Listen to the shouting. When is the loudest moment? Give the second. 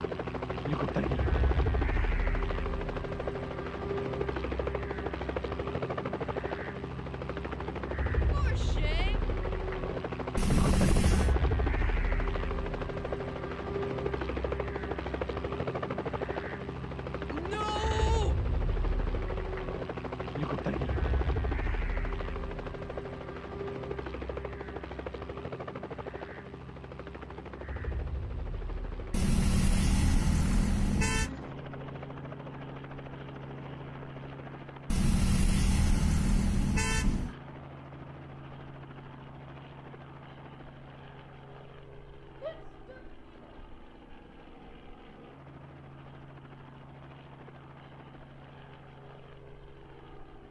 18 s.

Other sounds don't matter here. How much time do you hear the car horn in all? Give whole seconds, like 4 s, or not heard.
6 s.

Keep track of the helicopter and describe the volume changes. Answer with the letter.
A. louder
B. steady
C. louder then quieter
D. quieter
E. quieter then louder
D.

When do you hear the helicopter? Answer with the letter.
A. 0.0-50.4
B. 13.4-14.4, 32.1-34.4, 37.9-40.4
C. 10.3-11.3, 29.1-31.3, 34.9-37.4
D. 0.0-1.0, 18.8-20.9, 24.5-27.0
A.